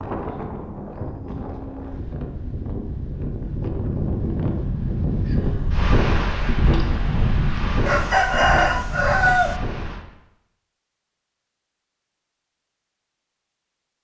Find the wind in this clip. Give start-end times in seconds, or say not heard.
0.0-10.1.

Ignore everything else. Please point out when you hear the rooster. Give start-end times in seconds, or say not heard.
7.8-9.6.